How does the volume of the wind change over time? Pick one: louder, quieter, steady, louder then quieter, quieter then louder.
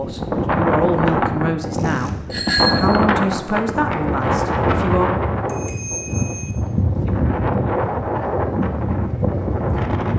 steady.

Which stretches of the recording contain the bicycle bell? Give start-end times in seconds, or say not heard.
1.8-2.8, 5.5-6.5.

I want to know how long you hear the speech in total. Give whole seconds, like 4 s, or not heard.
5 s.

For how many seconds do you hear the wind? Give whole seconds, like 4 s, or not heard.
10 s.